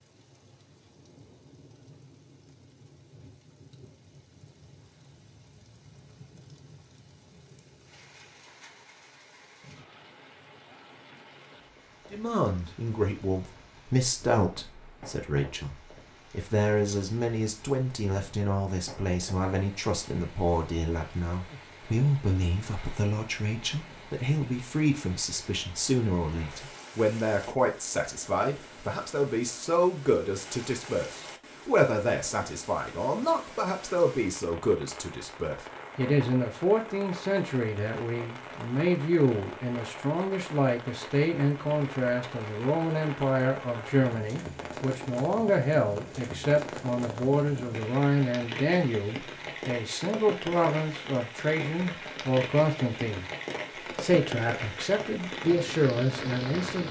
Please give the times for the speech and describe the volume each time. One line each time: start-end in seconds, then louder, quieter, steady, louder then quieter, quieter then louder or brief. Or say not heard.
12.1-53.2 steady
54.0-56.8 brief.